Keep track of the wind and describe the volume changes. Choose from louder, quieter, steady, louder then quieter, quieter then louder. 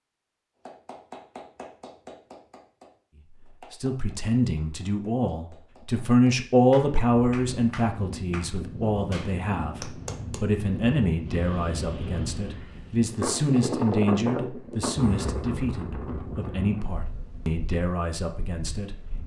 louder then quieter.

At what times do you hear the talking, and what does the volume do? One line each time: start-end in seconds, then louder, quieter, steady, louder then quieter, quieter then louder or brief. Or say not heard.
3.7-18.9 quieter.